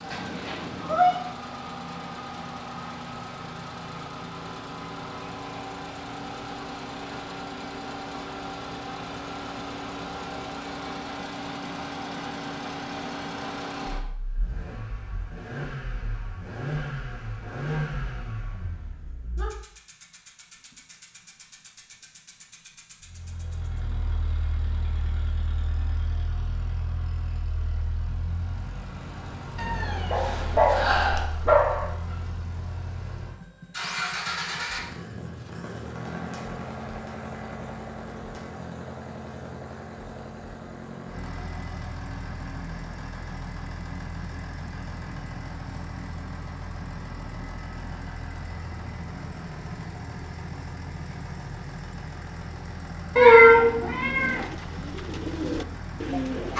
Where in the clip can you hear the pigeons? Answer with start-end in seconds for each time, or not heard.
54.1-56.5.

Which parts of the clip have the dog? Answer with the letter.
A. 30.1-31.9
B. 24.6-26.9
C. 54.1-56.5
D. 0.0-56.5
A.